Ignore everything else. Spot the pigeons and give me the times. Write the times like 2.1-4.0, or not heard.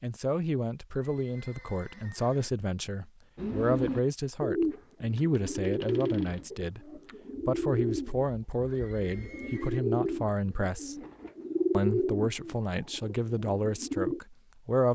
3.4-14.2.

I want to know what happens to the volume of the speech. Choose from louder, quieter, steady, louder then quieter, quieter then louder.
steady.